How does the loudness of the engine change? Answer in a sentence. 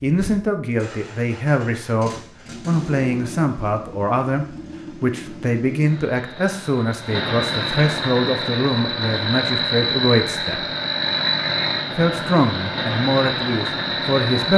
The volume of the engine goes up.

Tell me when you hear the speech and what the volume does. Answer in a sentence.
You can hear the speech from 0.0 to 10.7 s, at a steady volume; and briefly from 11.9 to 14.5 s.